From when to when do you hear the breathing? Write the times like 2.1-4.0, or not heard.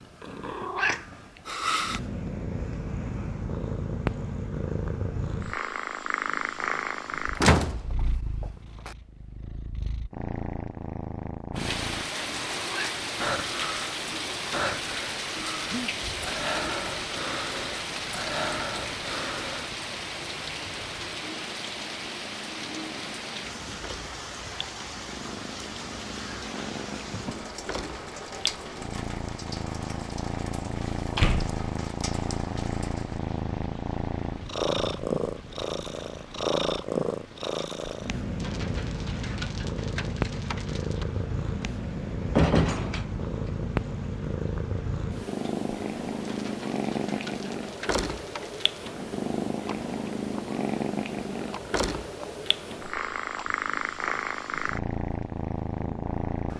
13.2-19.7.